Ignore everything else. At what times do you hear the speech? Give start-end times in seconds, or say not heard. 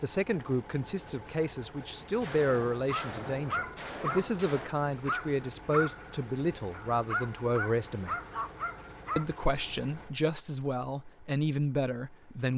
0.0-8.2, 9.2-12.5.